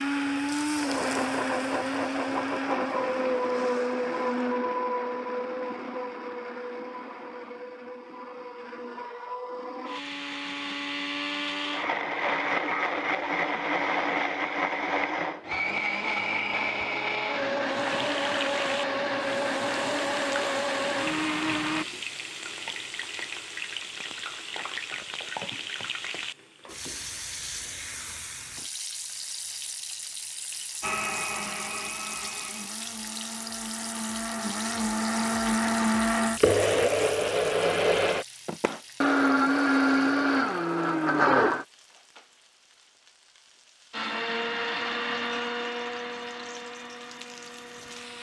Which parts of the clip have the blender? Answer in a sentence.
The blender can be heard from 0.0 to 21.9 s, from 30.8 to 41.6 s and from 43.9 to 48.1 s.